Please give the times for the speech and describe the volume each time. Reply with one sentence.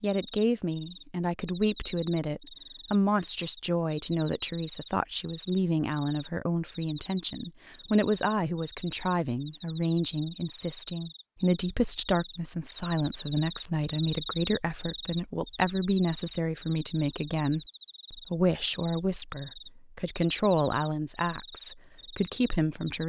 You can hear the speech from 0.0 to 23.0 s, at a steady volume.